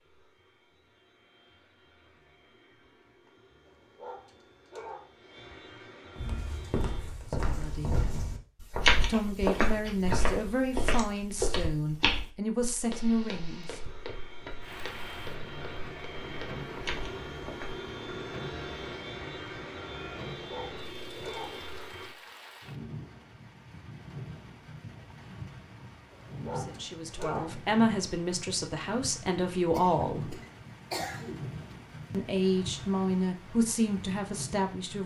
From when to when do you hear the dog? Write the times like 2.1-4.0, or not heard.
3.6-5.2, 20.4-21.6, 26.1-27.6.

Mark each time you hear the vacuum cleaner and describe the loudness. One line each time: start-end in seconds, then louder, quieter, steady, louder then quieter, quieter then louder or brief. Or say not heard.
0.0-7.2 louder
12.8-22.1 louder.